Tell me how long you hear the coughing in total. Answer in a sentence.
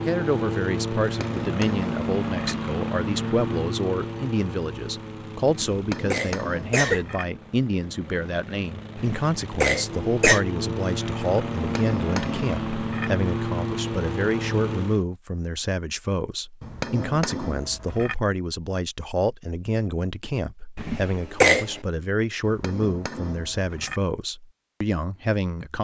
The coughing can be heard for 4 seconds in total.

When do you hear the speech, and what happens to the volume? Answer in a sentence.
The speech can be heard from 0.1 to 25.7 s, at a steady volume.